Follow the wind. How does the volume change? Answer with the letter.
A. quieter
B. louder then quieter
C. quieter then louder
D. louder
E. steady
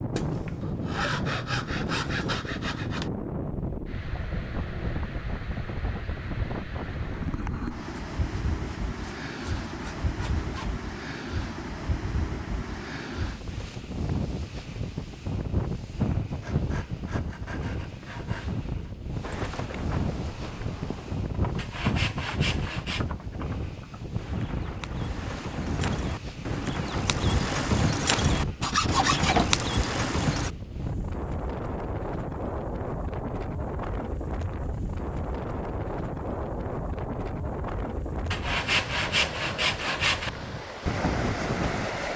E.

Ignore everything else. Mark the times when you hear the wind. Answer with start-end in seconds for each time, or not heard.
0.0-42.1.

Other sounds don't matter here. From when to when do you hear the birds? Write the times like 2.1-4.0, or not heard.
not heard.